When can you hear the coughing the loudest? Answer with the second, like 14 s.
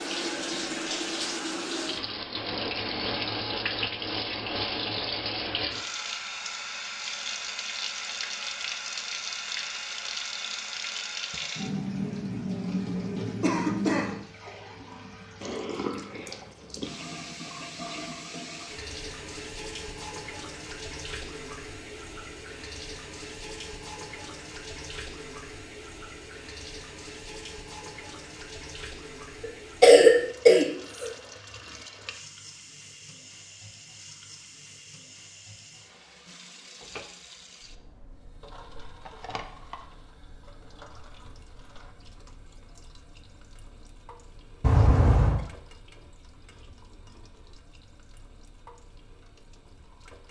30 s.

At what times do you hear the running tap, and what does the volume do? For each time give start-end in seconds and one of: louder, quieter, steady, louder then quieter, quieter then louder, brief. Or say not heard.
0.0-50.2 quieter.